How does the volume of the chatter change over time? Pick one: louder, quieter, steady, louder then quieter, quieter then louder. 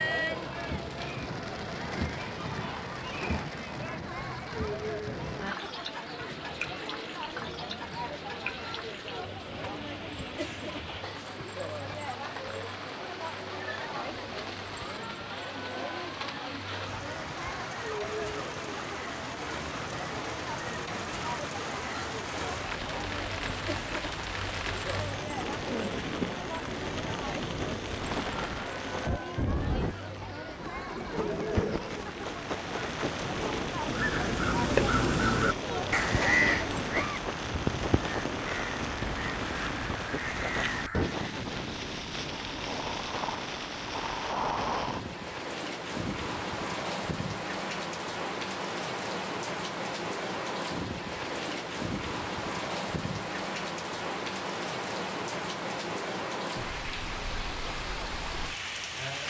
steady.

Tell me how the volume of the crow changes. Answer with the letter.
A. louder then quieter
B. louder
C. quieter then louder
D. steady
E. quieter
E.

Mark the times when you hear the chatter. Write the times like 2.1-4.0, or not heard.
0.0-37.1.